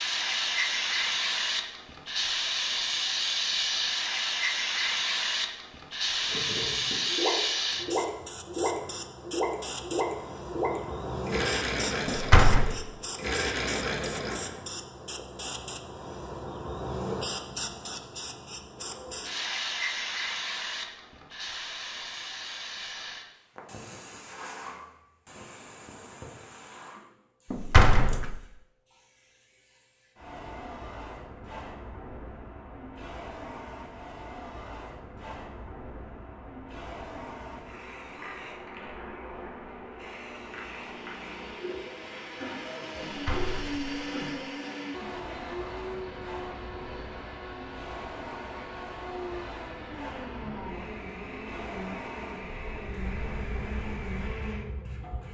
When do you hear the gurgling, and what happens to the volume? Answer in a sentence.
You can hear the gurgling from 6.2 to 14.6 s, at a steady volume.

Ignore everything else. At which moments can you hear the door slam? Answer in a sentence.
The door slam can be heard from 12.1 to 12.8 s, from 27.5 to 28.4 s and from 43.0 to 44.4 s.